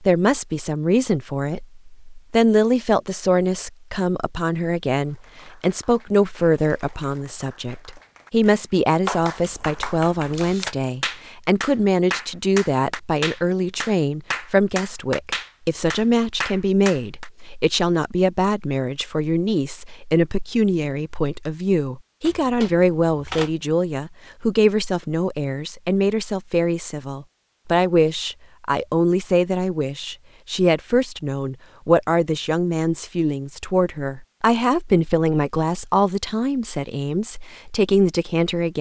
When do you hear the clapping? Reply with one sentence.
You can hear the clapping from 5.0 to 17.3 s.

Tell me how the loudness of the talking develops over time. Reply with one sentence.
The volume of the talking stays about the same.